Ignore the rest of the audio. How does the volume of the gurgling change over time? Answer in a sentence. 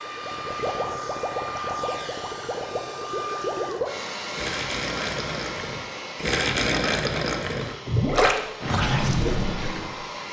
The loudness of the gurgling goes up.